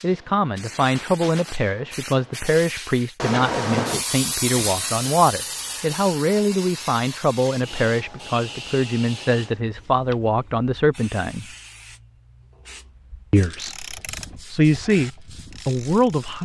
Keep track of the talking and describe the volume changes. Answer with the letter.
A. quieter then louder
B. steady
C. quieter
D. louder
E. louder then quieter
B.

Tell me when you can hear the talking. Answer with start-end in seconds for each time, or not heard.
0.0-11.4, 13.3-16.4.